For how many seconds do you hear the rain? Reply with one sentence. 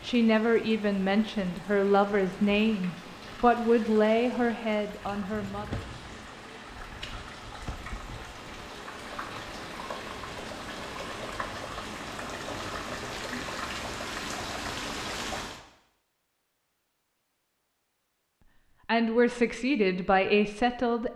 You can hear the rain for 16 seconds altogether.